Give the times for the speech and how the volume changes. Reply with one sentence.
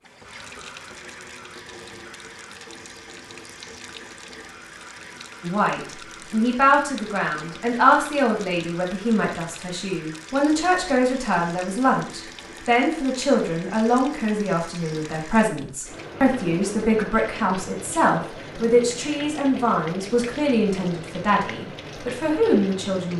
You can hear the speech from 5.4 to 23.1 s, at a steady volume.